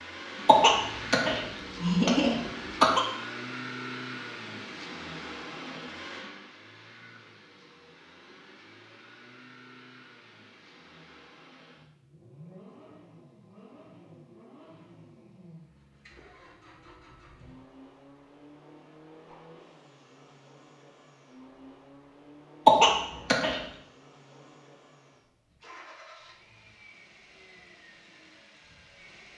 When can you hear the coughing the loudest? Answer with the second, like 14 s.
23 s.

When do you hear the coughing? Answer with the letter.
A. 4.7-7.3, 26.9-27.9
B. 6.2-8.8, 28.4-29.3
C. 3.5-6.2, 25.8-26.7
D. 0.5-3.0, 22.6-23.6
D.